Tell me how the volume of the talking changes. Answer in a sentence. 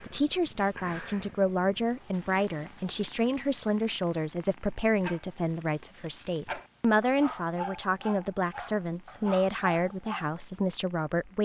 The volume of the talking stays about the same.